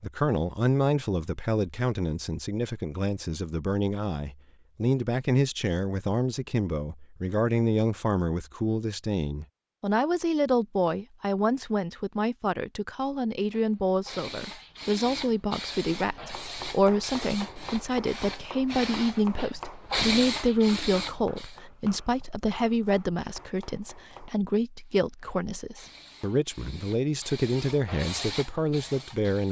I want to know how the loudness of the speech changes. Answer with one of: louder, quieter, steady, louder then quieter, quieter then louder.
steady.